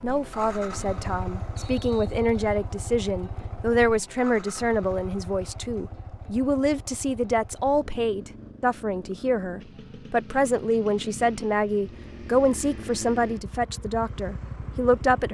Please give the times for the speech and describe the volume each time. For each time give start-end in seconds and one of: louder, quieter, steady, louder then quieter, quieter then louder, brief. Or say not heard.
0.0-15.2 steady.